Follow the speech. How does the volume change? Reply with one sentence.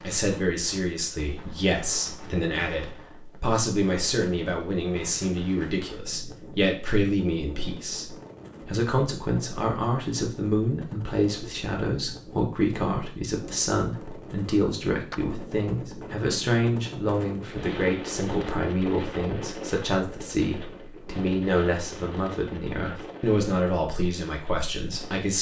The loudness of the speech stays about the same.